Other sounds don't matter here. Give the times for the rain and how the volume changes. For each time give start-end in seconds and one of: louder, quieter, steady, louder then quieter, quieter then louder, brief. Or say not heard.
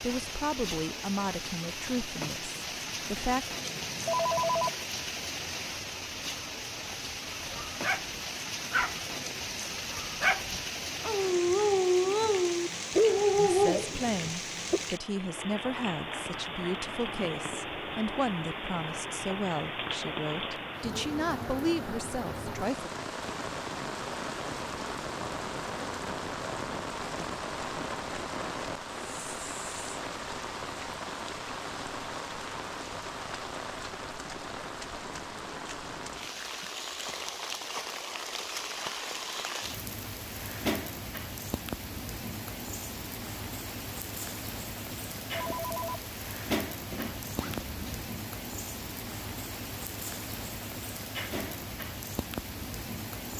0.0-53.3 steady.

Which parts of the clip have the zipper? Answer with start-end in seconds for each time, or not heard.
46.9-48.0.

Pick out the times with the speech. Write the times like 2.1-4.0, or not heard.
0.0-3.5, 13.3-22.9.